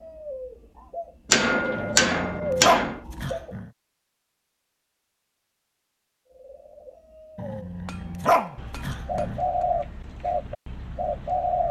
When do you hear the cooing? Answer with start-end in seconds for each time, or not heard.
0.0-3.5, 6.2-11.6.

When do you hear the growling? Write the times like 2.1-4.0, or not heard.
1.8-3.7, 7.3-9.4.